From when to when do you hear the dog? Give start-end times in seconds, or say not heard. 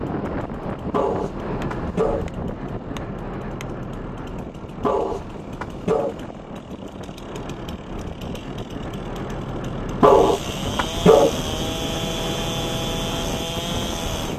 0.9-2.2, 4.8-6.2, 10.0-11.3.